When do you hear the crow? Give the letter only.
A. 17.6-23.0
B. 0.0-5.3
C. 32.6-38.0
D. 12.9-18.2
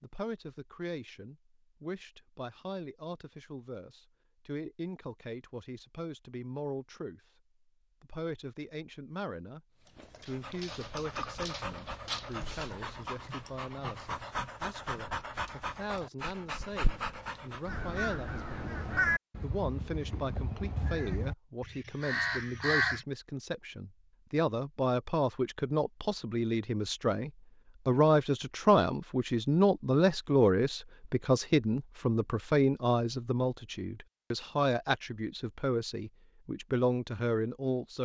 A.